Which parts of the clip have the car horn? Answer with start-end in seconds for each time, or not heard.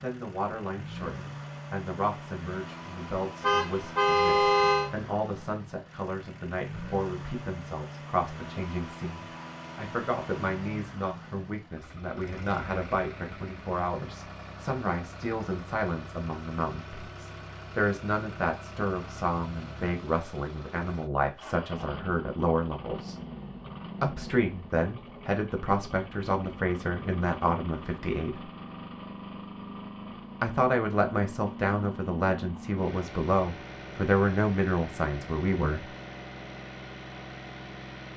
3.4-4.9.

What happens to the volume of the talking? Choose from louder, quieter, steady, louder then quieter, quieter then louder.
louder.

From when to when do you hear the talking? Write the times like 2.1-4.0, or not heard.
0.0-23.1, 24.0-28.5, 30.4-35.9.